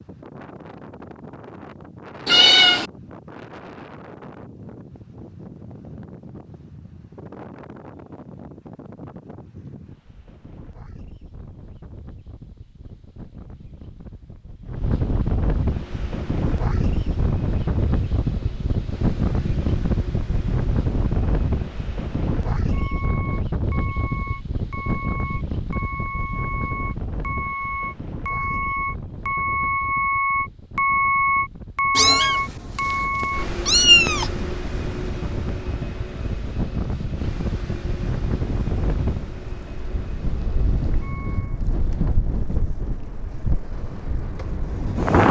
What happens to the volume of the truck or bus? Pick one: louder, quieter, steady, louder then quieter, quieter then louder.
louder then quieter.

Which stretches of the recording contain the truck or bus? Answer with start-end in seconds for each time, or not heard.
15.7-41.6.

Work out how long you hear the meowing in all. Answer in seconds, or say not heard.
3 s.